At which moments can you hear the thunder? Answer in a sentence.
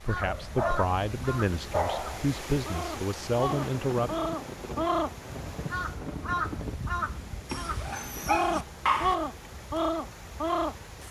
You can hear the thunder from 3.5 to 6.8 s.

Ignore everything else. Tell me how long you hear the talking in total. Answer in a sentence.
The talking can be heard for 4 seconds in total.